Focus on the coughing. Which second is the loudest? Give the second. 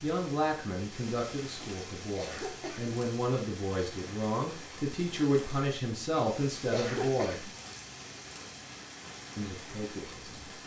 7 s.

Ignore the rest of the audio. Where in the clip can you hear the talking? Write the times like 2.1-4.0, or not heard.
0.0-7.5, 9.3-10.4.